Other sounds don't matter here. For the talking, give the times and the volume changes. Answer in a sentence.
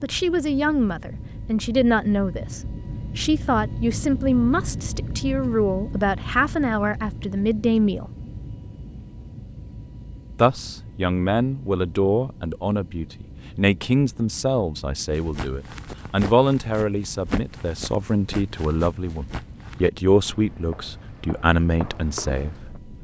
You can hear the talking from 0.0 to 8.1 s, at a steady volume; and from 10.3 to 22.9 s, at a steady volume.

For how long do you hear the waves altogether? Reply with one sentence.
The waves can't be heard in this clip.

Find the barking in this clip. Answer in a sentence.
The barking can't be heard in this clip.